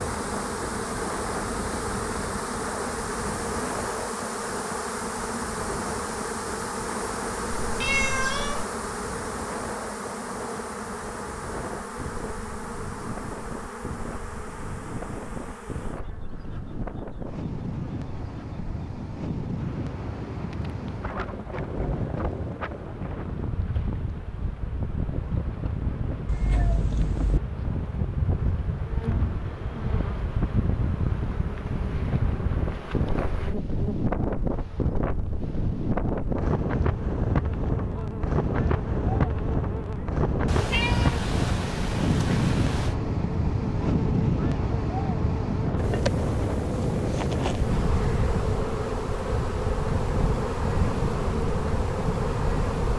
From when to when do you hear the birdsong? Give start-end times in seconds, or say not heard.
not heard.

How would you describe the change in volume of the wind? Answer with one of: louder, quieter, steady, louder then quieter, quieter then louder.
louder.